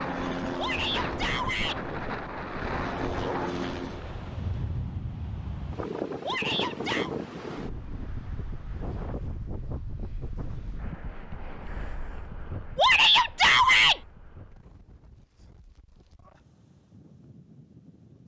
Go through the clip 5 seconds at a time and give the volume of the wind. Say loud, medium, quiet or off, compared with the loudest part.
loud, loud, medium, quiet.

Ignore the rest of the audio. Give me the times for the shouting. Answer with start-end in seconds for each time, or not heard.
0.6-1.8, 6.2-7.1, 12.8-14.0.